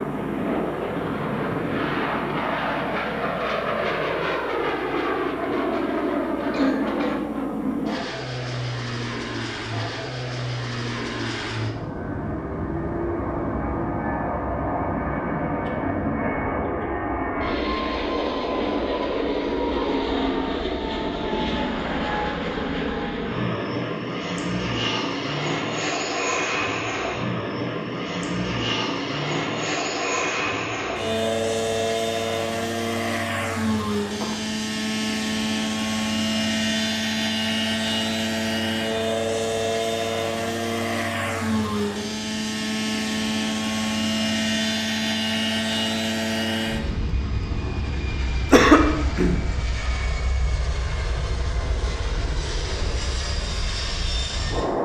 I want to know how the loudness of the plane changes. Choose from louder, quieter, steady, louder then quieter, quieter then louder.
steady.